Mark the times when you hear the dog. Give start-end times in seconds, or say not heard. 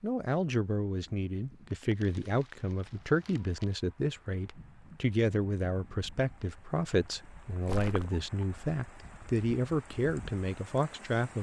not heard.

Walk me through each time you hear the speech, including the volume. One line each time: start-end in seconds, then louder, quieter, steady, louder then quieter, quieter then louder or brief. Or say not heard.
0.0-11.3 steady.